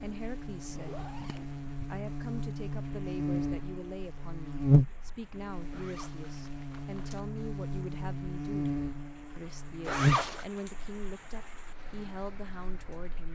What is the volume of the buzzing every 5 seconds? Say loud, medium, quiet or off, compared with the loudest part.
loud, medium, loud.